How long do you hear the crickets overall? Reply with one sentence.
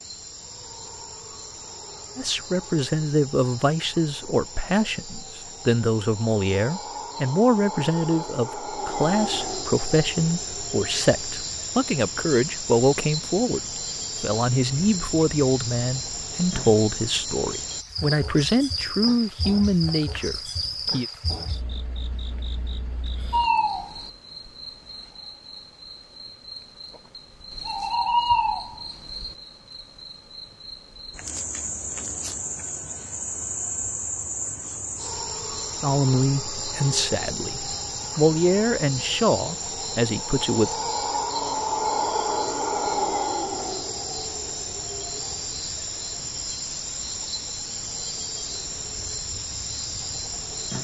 The crickets can be heard for 51 seconds in total.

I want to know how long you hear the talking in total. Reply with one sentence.
The talking can be heard for 23 seconds in total.